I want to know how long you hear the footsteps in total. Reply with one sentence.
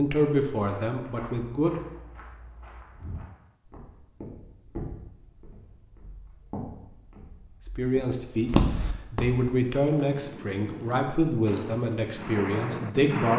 The footsteps can be heard for 9 seconds in total.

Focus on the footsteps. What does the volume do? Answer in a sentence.
The volume of the footsteps goes up.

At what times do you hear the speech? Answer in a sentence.
You can hear the speech from 0.0 to 1.8 s and from 7.8 to 13.3 s.